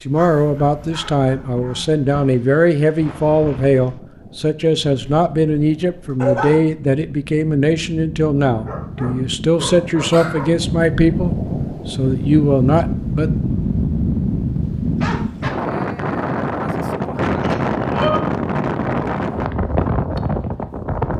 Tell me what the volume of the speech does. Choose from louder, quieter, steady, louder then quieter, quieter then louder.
steady.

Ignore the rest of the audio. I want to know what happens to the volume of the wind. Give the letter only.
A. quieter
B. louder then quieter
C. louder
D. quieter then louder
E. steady
C.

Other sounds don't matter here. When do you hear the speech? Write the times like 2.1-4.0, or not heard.
0.1-13.3.